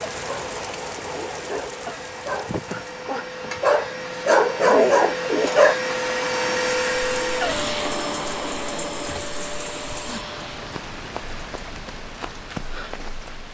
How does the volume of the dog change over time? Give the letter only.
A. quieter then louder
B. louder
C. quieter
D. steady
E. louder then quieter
B.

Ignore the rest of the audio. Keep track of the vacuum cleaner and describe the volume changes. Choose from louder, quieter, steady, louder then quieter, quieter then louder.
louder then quieter.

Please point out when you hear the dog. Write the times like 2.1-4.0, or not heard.
0.1-5.8.